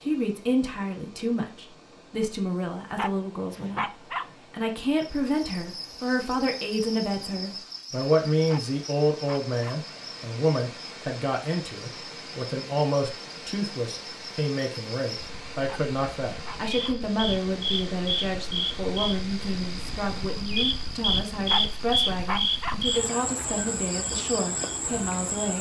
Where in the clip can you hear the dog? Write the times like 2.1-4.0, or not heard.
3.0-4.3, 8.4-9.8, 15.7-17.0, 21.4-22.8.